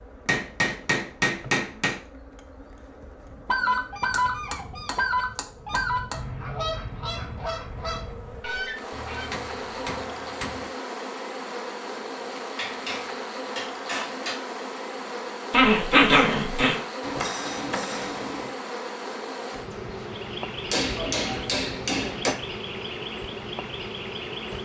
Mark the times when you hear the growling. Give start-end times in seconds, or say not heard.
15.5-16.8.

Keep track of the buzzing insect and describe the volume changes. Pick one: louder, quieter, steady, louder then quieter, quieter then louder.
louder.